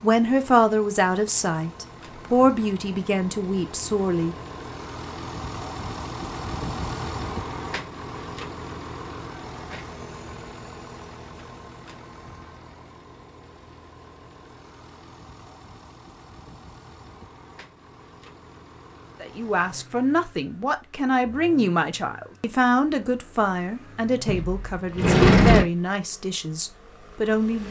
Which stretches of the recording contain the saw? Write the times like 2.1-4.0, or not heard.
not heard.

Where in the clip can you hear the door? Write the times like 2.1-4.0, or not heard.
24.2-25.6.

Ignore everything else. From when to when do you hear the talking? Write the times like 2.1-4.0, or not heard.
0.0-4.3, 19.2-27.6.